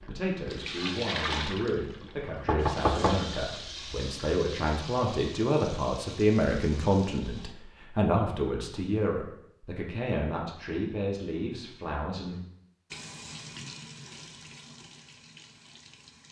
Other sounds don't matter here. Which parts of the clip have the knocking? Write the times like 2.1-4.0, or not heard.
2.5-4.3.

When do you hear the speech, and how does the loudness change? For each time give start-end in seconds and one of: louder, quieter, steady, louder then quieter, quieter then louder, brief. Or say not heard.
0.0-12.3 louder then quieter.